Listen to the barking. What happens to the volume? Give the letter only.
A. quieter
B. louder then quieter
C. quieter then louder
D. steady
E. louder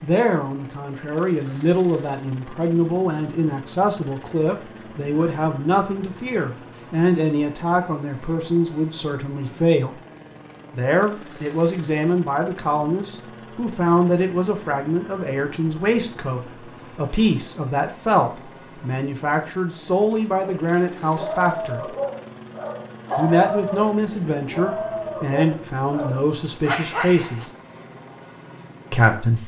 D.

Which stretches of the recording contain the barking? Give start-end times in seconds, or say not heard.
20.4-27.4.